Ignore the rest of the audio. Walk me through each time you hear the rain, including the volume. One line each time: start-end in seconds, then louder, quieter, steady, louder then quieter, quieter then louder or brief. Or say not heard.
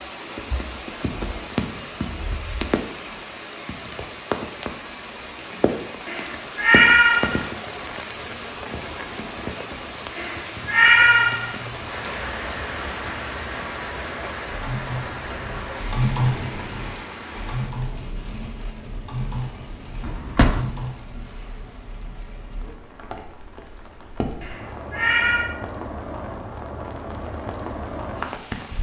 0.0-28.7 quieter then louder.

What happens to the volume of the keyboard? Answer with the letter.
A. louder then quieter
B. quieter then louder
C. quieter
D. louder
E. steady
A.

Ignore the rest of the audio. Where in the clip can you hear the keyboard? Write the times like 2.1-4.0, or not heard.
14.4-20.9.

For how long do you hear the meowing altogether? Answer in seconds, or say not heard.
4 s.